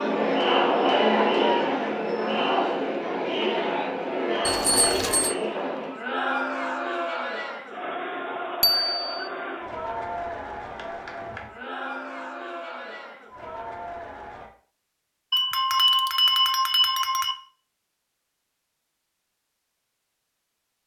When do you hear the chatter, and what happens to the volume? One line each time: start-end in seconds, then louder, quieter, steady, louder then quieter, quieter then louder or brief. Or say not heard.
0.0-14.5 quieter.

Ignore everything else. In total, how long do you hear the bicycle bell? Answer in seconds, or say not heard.
4 s.